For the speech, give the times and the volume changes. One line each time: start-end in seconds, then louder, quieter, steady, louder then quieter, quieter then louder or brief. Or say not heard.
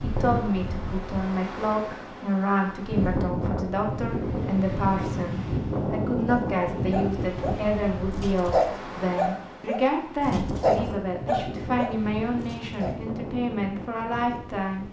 0.0-14.8 steady.